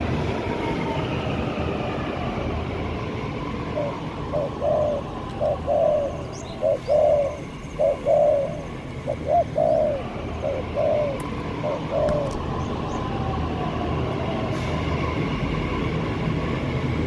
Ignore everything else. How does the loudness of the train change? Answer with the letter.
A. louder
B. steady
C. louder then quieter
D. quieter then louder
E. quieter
D.